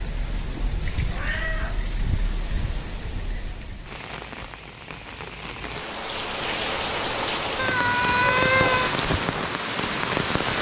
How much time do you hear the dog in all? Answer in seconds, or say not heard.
not heard.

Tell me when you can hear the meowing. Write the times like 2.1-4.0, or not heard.
0.6-1.9, 7.5-8.9.